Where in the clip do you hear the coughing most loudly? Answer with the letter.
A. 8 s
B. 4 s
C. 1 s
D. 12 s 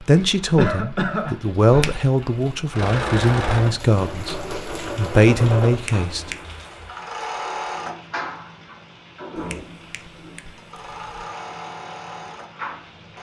C.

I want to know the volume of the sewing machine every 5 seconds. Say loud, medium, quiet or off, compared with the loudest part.
loud, loud, medium.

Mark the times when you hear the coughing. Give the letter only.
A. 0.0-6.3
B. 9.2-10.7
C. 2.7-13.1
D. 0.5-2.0
D.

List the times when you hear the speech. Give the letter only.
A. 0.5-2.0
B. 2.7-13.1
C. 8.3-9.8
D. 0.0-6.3
D.